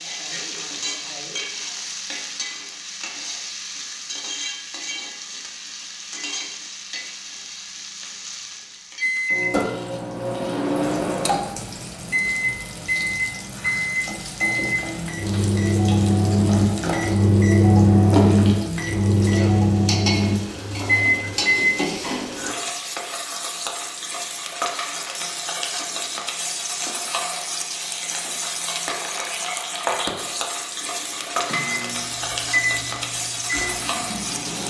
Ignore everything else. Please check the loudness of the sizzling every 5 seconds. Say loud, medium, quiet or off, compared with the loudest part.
loud, medium, medium, loud, loud, loud, loud.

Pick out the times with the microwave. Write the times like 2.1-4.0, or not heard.
9.0-22.6, 30.8-34.6.